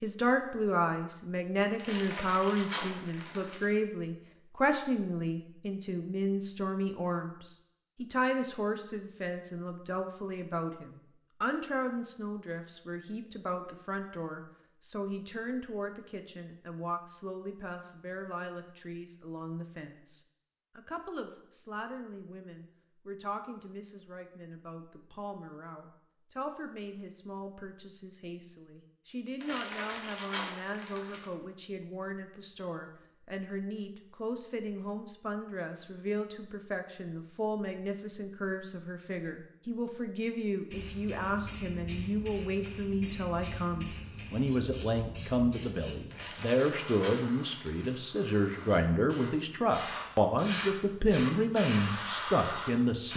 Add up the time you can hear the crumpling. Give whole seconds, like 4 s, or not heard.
6 s.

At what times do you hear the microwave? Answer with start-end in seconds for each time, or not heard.
not heard.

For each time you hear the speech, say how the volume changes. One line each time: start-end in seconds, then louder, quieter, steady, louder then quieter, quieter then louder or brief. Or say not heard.
0.0-53.1 quieter then louder.